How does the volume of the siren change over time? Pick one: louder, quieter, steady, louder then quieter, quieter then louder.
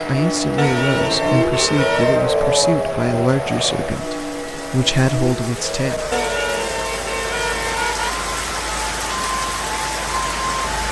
quieter.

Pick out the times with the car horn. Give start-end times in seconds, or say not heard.
0.6-2.3, 6.1-8.2.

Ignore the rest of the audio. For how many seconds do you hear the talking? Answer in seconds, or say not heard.
6 s.